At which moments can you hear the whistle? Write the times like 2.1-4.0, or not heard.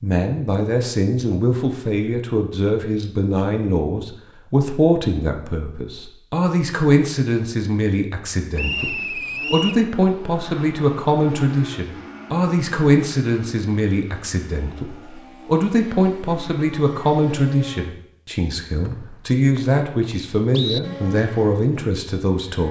8.6-9.8, 18.9-20.8.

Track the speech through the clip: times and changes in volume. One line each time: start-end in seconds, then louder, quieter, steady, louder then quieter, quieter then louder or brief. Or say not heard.
0.0-22.6 steady.